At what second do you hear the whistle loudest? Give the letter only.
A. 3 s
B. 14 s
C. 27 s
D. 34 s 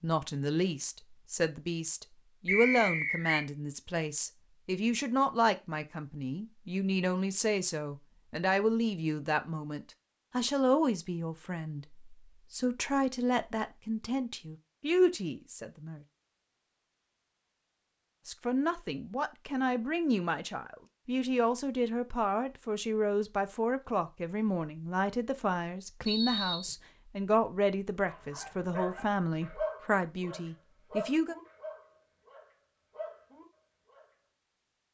A.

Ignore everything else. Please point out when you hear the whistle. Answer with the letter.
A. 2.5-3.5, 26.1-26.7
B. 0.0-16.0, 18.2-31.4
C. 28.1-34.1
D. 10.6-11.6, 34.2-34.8
A.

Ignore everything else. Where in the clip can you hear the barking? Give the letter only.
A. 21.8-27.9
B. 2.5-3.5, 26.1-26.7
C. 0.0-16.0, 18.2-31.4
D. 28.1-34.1
D.